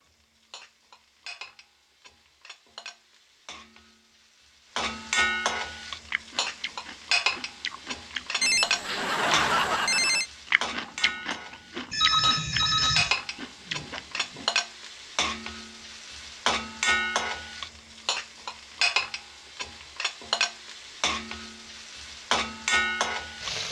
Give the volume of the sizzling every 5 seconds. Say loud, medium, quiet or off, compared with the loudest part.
quiet, loud, loud, loud, loud.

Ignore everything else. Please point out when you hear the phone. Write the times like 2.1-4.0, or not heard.
8.4-10.3, 11.9-13.2.